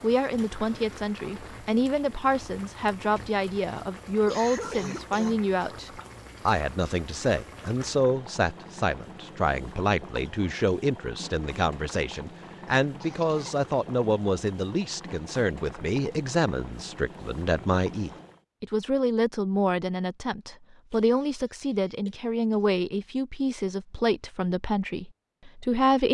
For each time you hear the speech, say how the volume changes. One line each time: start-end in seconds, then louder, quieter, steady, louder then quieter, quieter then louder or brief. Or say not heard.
0.0-26.0 steady.